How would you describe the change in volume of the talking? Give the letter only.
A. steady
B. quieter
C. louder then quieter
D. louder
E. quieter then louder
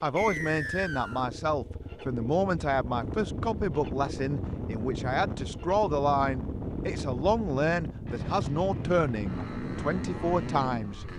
A.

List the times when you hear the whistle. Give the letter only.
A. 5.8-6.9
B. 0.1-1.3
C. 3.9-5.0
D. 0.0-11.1
B.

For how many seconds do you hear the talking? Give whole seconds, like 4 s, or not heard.
11 s.